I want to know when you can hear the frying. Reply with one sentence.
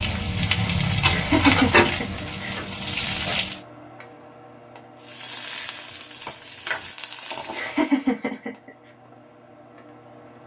The frying can be heard from 0.0 to 3.6 s and from 5.0 to 7.9 s.